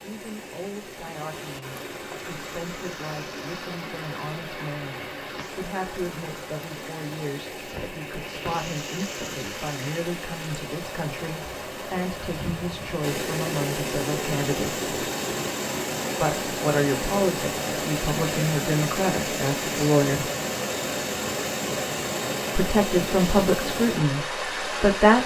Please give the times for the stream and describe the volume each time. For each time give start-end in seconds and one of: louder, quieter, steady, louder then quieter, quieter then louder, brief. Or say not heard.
0.0-25.2 louder.